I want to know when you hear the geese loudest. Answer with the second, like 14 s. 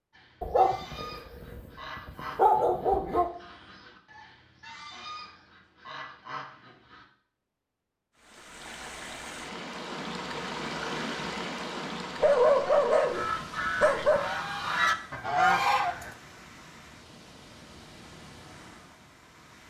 16 s.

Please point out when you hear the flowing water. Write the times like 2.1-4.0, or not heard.
8.2-19.6.